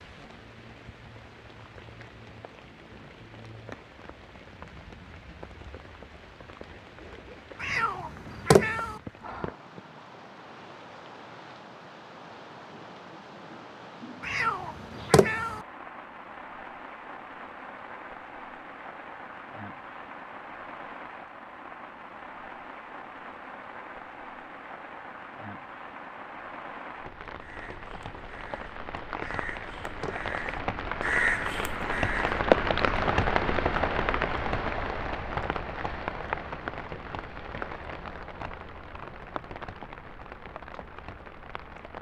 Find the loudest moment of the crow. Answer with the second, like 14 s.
31 s.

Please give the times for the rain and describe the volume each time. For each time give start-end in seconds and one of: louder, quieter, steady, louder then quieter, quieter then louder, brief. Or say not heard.
0.0-41.9 louder.